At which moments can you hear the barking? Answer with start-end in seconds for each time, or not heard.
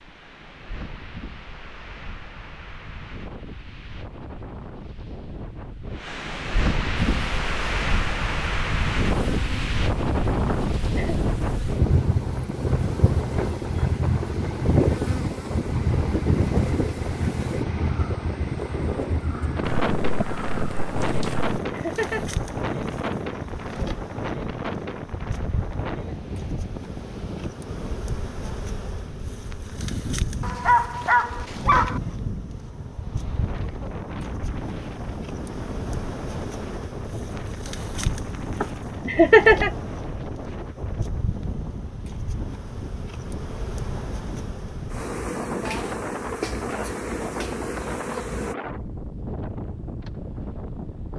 19.6-21.6, 30.4-32.0.